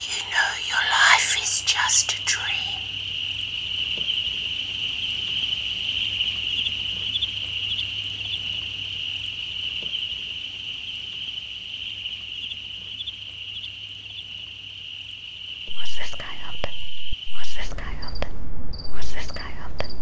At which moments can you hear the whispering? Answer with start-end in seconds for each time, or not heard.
0.0-2.8, 15.7-19.9.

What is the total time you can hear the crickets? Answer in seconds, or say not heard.
20 s.